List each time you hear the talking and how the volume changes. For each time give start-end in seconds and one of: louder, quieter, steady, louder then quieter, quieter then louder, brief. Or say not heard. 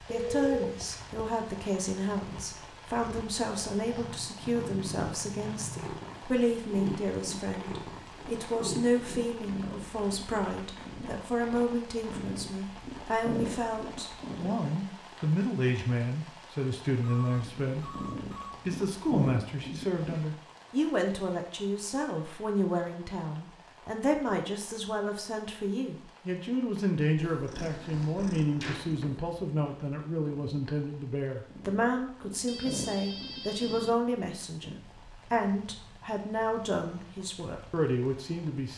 0.0-38.7 steady.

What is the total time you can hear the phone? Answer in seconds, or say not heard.
4 s.